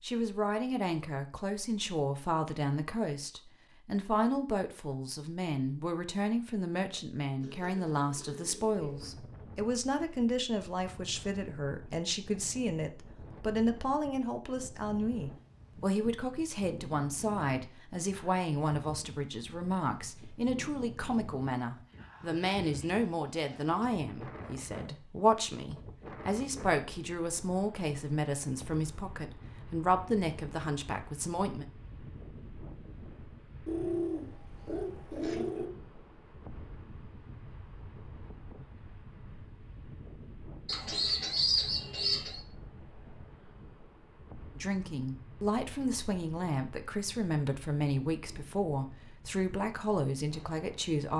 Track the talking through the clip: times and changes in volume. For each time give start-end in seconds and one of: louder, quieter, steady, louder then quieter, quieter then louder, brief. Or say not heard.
0.0-31.6 steady
44.5-51.1 steady.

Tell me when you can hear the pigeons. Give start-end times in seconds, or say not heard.
7.4-9.2, 22.2-23.8, 33.6-35.7, 40.6-42.4.